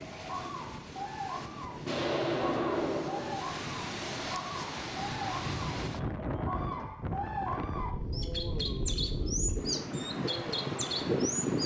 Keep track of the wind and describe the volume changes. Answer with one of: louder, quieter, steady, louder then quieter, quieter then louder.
louder.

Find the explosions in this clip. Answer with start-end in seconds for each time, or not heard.
1.9-3.5.